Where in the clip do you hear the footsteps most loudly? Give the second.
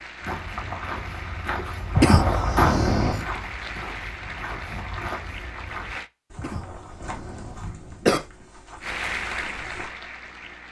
3 s.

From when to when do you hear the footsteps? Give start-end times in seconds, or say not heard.
0.2-9.9.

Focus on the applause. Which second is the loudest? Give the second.
9 s.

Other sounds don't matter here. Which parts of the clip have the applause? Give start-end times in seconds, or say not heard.
0.0-6.1, 8.8-10.6.